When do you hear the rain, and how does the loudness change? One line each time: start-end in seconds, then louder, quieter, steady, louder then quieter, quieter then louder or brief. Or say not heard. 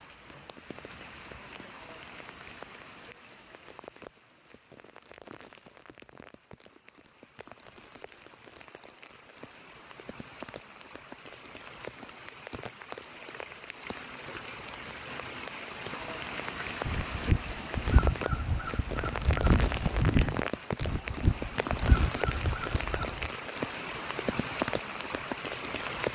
0.0-26.1 louder.